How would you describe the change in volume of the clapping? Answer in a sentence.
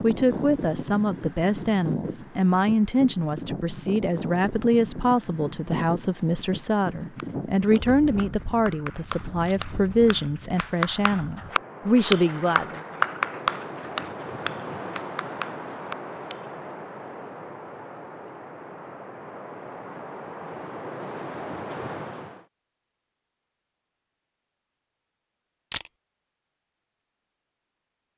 The loudness of the clapping goes up, then down.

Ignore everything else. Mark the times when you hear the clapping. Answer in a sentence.
You can hear the clapping from 7.0 to 16.6 s.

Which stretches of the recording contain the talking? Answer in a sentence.
The talking can be heard from 0.0 to 12.8 s.